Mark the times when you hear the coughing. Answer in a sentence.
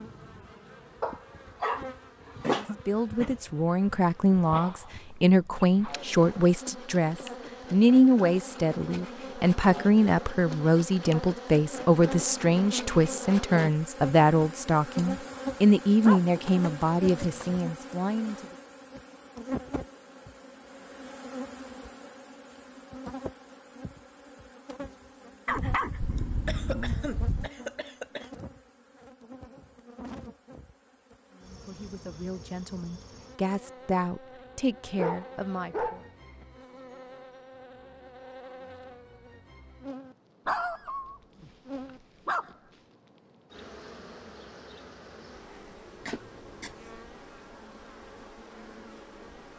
The coughing can be heard from 2.4 to 3.4 s, from 26.1 to 28.3 s and from 46.0 to 46.8 s.